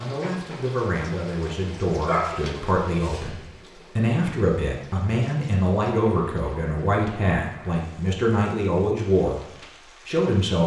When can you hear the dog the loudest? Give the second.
2 s.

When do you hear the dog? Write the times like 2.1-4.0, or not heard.
2.0-3.5.